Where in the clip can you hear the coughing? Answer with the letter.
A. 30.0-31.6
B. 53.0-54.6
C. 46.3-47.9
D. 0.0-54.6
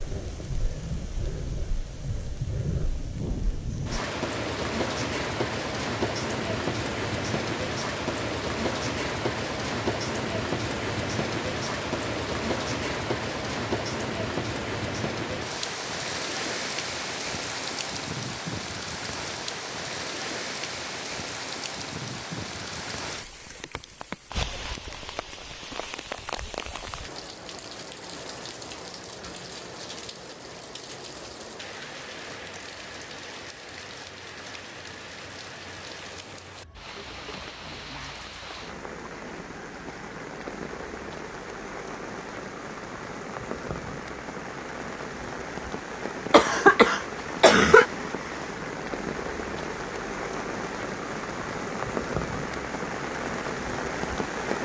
C.